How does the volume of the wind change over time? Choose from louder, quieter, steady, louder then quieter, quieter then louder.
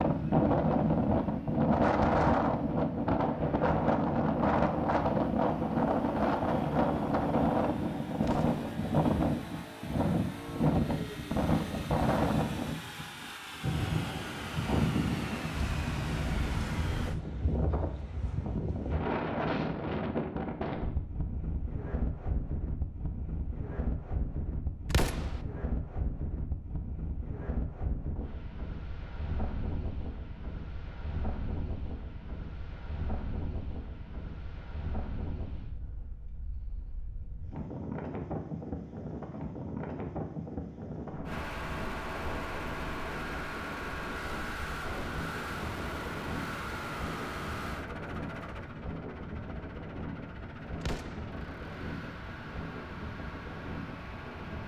quieter.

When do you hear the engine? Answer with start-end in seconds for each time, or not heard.
0.0-17.1, 41.2-54.6.